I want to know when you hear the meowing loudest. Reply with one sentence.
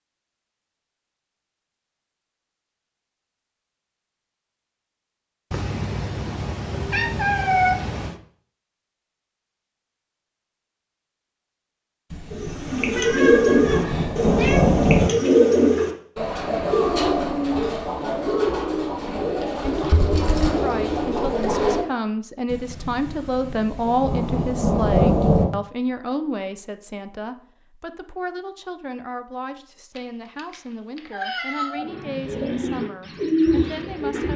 The volume of the meowing peaks at 8 seconds.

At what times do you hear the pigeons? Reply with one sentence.
The pigeons can be heard from 12.3 to 21.9 s and from 31.8 to 34.3 s.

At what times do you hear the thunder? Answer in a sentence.
You can hear the thunder from 12.1 to 15.1 s and from 22.5 to 25.4 s.